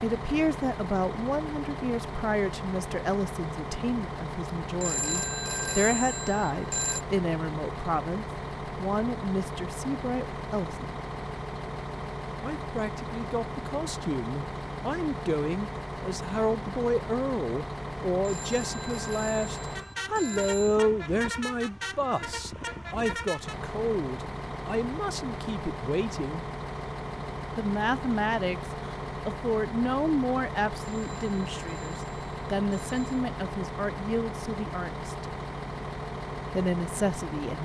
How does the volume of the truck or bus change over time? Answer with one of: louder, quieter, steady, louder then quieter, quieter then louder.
steady.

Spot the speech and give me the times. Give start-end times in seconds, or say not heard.
0.0-10.9, 12.4-26.4, 27.6-35.3, 36.5-37.6.